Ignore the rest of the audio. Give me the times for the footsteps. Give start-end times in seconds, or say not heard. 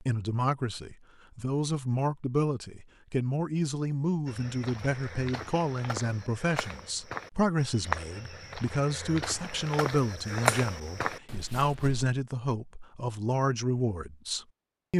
4.2-12.1.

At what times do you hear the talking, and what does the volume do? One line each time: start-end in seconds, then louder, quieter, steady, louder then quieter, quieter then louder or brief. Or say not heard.
0.0-14.9 steady.